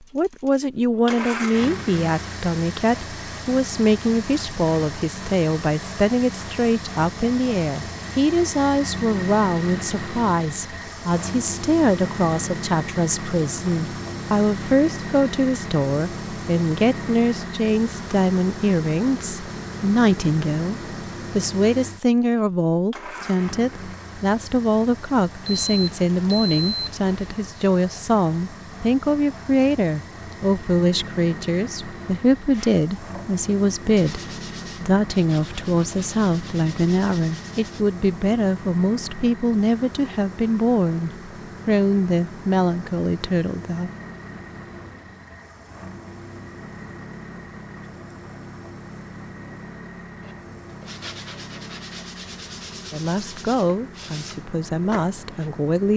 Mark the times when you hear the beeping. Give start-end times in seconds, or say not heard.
25.4-27.4.